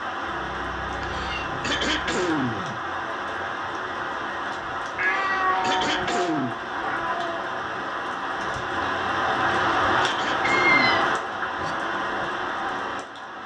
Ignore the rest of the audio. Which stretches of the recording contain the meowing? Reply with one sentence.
The meowing can be heard from 0.2 to 2.2 s, from 5.0 to 7.5 s and from 10.4 to 11.8 s.